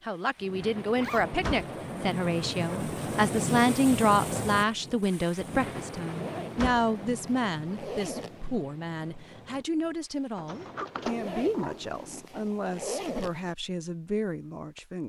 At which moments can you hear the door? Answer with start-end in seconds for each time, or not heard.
1.2-1.7, 6.4-6.8, 10.3-12.2.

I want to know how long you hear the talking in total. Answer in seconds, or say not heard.
15 s.